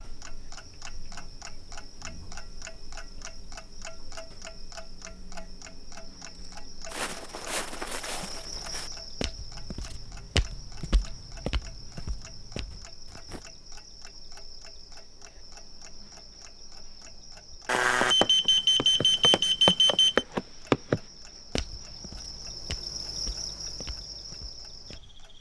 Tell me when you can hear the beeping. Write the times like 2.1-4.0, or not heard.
17.6-20.2.